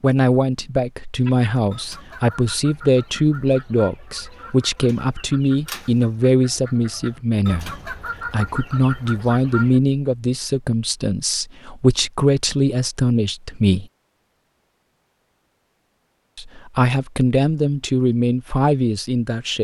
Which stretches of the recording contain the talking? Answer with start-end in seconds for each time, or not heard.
0.0-13.8, 16.4-19.5.